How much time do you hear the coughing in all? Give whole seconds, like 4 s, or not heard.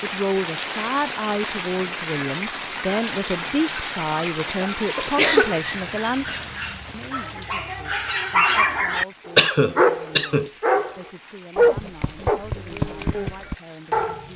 2 s.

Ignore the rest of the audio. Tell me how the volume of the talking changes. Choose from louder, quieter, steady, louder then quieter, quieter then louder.
quieter.